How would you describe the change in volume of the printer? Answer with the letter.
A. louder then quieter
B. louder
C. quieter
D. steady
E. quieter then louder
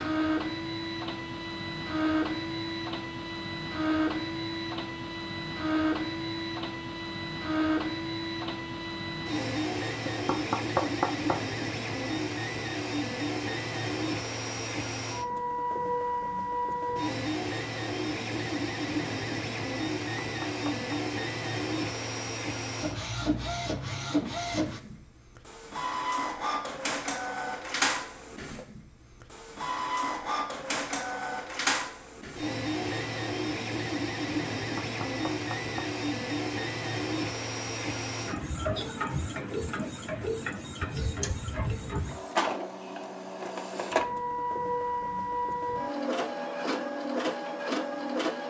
D.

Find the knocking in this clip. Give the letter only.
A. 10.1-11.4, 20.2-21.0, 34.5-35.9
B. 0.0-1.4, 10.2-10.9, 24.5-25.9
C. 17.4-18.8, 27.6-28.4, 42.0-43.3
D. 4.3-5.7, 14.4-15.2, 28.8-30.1
A.